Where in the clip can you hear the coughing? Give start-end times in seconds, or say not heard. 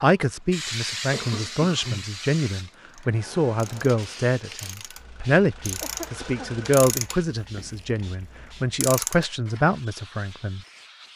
1.1-2.1, 5.8-6.6.